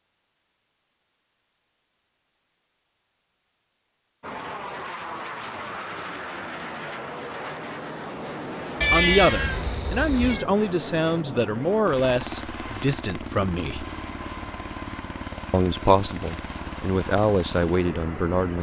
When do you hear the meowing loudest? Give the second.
9 s.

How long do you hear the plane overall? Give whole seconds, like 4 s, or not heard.
14 s.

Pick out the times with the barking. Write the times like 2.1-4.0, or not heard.
not heard.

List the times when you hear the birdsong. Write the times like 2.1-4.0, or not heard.
not heard.